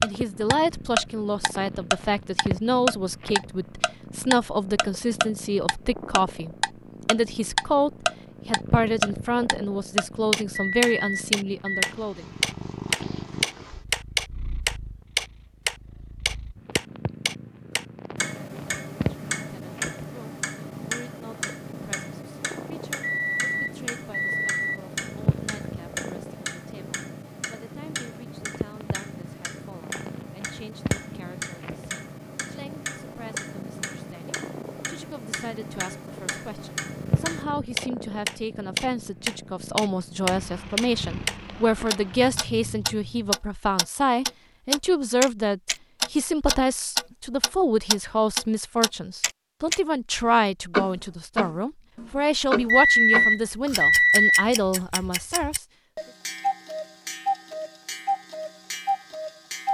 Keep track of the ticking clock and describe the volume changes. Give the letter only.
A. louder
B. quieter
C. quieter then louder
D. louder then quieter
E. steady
C.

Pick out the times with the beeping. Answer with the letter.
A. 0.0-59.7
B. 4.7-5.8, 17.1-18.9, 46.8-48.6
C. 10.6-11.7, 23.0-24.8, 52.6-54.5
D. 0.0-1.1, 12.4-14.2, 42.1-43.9
C.